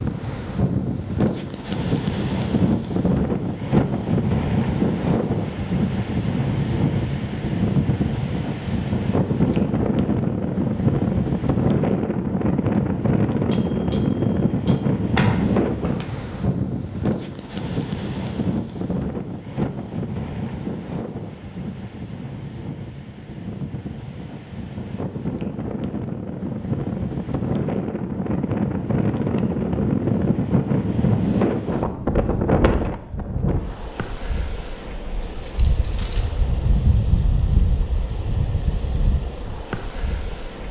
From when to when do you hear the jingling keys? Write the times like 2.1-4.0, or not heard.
8.6-9.8, 15.1-16.1, 35.2-36.2.